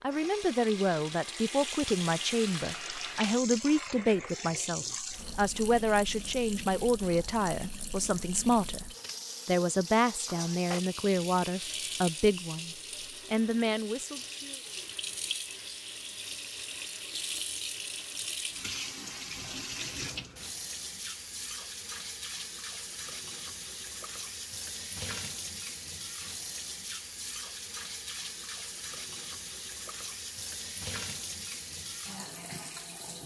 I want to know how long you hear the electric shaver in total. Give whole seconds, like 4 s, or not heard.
not heard.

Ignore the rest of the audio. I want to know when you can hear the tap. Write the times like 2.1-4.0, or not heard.
0.0-33.2.